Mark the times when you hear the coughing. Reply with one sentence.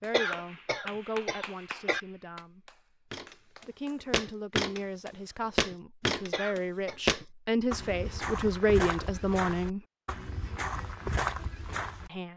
The coughing can be heard from 0.1 to 2.0 s and from 6.3 to 7.0 s.